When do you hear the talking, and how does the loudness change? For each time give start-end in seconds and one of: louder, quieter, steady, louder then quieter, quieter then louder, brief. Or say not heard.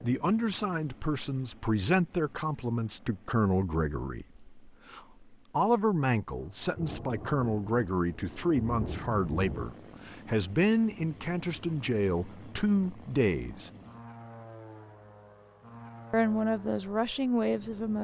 0.0-13.7 steady
16.1-17.9 brief.